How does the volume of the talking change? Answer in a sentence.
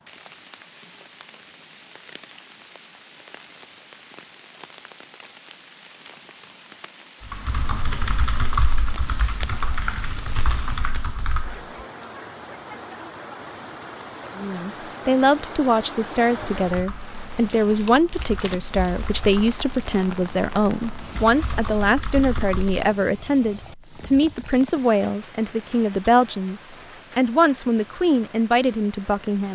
The volume of the talking stays about the same.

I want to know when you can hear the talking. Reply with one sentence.
You can hear the talking from 14.3 to 29.4 s.